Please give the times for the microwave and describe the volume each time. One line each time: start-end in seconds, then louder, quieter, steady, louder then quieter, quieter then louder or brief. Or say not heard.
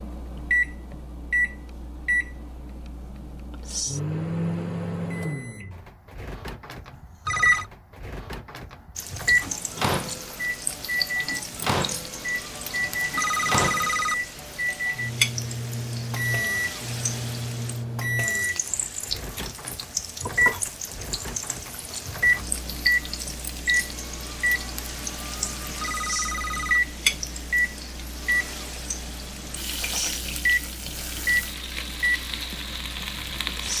0.0-33.7 steady.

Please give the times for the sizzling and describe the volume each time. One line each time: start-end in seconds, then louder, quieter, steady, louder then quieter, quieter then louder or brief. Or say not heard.
8.9-33.7 steady.